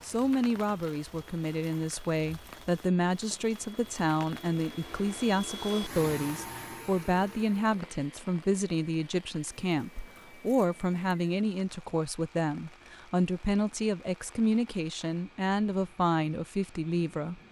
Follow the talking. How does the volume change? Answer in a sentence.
The loudness of the talking stays about the same.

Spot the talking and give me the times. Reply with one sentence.
You can hear the talking from 0.0 to 17.4 s.